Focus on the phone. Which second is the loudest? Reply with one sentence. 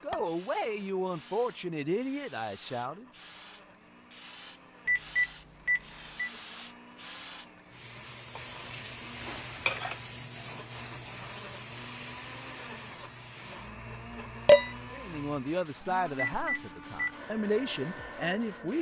The volume of the phone peaks at 5 seconds.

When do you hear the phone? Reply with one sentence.
The phone can be heard from 4.8 to 6.3 s and from 16.2 to 17.1 s.